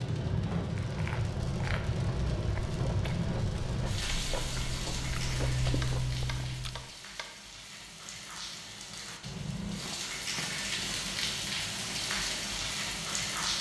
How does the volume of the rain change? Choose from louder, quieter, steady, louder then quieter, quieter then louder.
quieter then louder.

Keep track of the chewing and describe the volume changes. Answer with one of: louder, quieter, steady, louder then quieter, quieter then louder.
louder.